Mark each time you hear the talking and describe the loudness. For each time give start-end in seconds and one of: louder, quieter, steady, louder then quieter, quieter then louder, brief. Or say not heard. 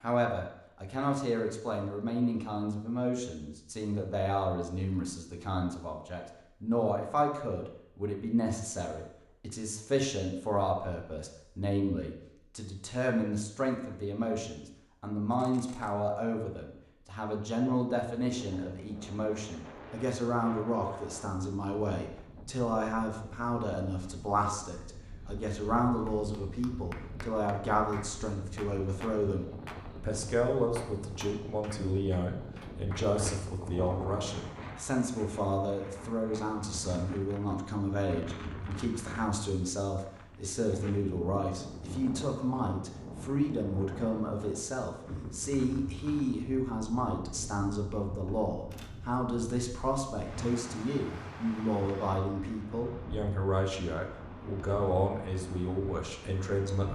0.0-56.9 steady.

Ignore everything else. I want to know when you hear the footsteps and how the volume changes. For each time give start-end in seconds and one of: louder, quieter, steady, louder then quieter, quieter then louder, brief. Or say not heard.
not heard.